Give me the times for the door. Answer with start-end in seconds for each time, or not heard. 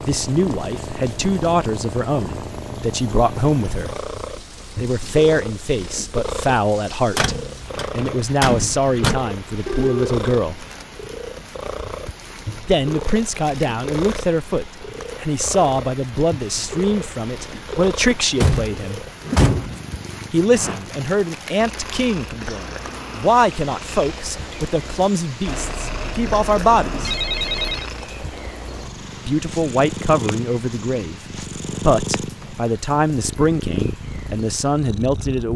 7.2-9.2, 18.1-19.8.